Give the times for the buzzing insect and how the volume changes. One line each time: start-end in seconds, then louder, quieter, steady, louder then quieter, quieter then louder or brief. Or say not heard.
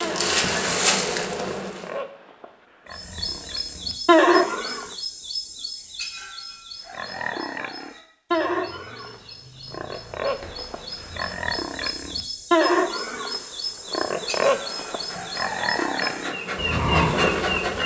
0.0-1.9 brief
13.6-17.8 louder.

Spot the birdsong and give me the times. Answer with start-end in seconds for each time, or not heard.
2.9-17.6.